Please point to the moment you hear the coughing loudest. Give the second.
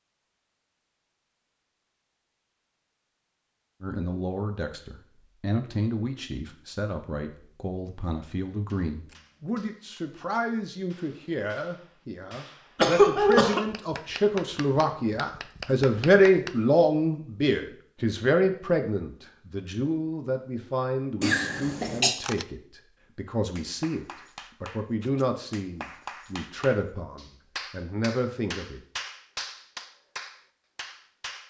13 s.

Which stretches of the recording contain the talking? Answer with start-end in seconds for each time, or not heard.
3.8-28.8.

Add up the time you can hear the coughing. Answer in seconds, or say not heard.
2 s.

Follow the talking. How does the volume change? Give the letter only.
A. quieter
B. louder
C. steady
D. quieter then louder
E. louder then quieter
E.